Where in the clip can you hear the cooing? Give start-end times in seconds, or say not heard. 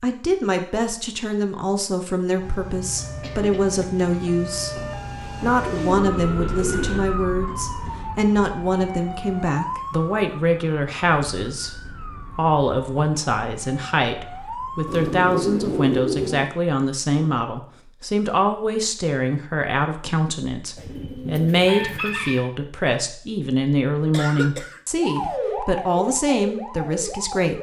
5.4-7.0, 14.8-16.4, 20.8-22.4.